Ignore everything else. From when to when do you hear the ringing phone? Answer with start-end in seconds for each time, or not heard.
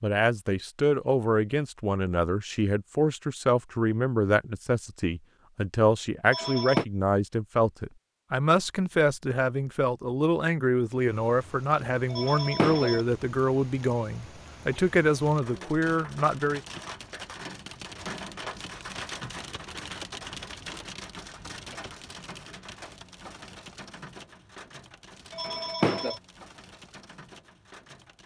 6.2-6.8, 12.1-13.0, 25.3-26.2.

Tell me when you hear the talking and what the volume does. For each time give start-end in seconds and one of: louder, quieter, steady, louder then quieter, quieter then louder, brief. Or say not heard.
0.0-16.6 steady.